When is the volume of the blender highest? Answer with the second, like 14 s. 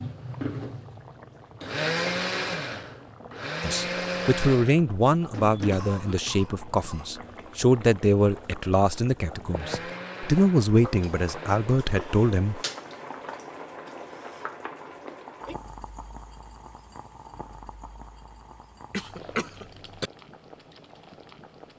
2 s.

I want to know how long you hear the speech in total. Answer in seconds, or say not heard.
9 s.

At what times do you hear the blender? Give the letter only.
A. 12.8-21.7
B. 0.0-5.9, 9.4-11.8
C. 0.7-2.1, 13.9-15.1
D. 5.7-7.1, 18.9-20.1
B.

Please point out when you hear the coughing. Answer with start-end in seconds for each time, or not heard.
5.7-7.1, 18.9-20.1.